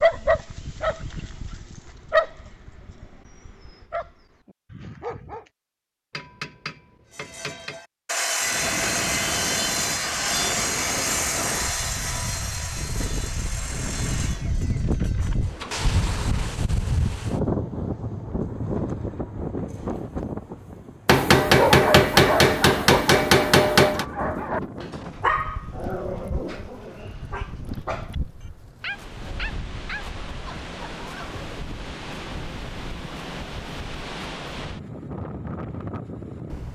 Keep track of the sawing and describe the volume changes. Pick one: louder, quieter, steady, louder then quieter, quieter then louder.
quieter.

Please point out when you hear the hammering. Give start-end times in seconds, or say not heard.
6.1-7.8, 21.1-24.1.